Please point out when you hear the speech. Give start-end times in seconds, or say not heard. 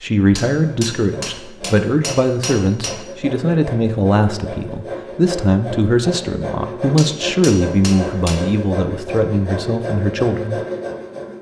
0.0-10.6.